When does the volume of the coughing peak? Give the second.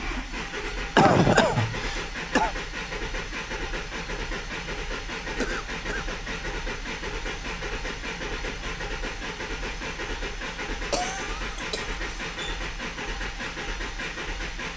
1 s.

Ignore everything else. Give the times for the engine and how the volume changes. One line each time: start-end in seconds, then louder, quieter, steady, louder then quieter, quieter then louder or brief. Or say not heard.
0.0-14.7 steady.